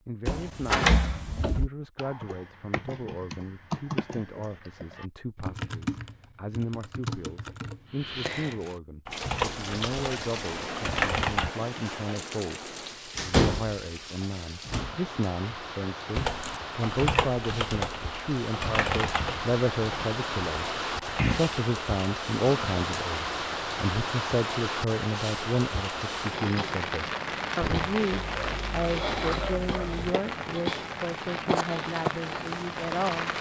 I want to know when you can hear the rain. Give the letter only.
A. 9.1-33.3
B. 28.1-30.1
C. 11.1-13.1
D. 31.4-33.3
A.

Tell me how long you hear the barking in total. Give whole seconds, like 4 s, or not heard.
2 s.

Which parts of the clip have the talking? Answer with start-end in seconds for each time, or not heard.
0.1-33.3.